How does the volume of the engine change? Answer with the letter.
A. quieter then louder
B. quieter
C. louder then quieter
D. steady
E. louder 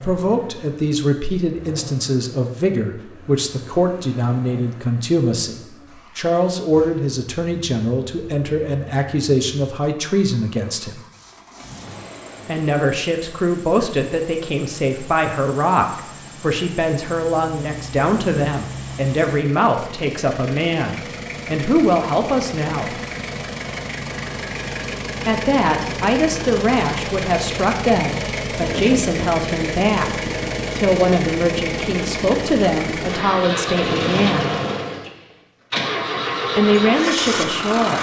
E.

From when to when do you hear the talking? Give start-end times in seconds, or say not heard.
0.0-11.0, 12.4-22.9, 25.2-30.1, 30.8-34.5, 36.5-37.9.